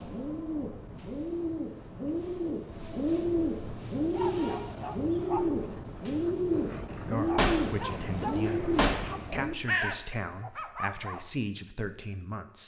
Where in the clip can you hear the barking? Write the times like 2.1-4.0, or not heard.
4.0-11.3.